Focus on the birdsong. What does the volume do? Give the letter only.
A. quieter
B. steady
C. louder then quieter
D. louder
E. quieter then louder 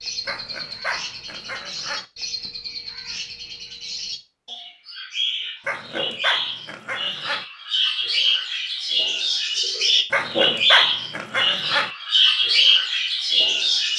D.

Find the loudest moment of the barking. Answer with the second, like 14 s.
11 s.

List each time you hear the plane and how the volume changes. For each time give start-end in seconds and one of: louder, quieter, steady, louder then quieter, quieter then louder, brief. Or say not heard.
not heard.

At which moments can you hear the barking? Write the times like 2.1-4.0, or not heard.
0.2-2.0, 5.7-7.5, 10.1-11.9.